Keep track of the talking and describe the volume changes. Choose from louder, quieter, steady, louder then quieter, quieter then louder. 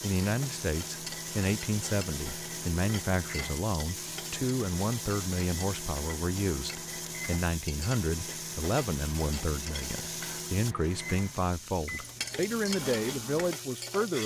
steady.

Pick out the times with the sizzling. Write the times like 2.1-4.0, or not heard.
0.0-14.2.